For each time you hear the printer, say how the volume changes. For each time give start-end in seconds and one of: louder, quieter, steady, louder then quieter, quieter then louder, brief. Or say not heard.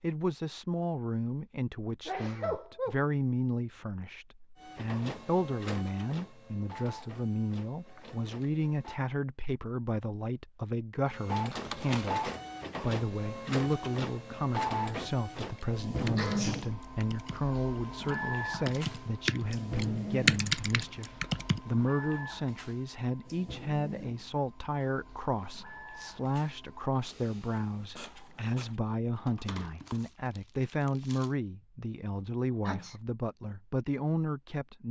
4.5-9.0 quieter
11.1-28.8 quieter.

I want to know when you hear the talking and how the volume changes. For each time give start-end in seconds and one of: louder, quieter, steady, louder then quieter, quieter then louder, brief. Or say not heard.
0.0-34.8 steady.